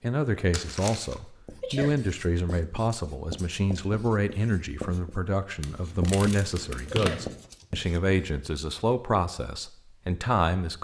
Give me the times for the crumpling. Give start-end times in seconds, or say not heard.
0.5-1.1, 5.6-7.3.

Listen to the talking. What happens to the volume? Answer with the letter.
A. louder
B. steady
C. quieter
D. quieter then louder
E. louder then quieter
B.